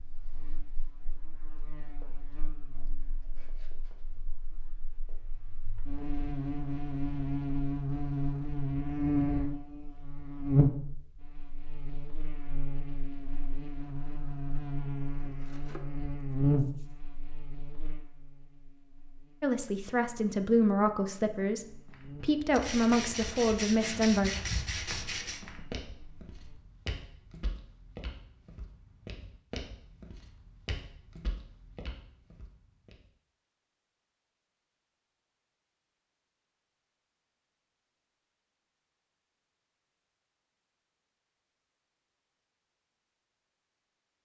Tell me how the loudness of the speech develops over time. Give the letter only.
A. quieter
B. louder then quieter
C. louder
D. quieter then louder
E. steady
D.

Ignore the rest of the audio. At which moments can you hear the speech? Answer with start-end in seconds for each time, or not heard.
19.4-24.3.